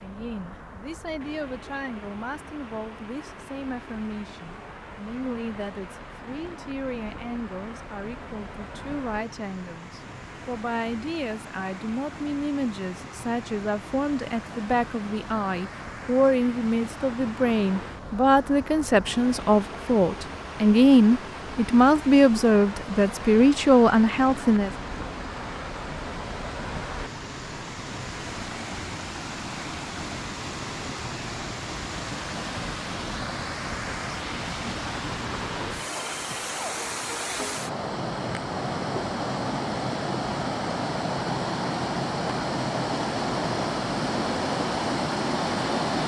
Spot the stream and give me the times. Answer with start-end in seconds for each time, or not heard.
0.0-46.0.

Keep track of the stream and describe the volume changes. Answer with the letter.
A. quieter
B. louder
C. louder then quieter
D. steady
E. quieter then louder
B.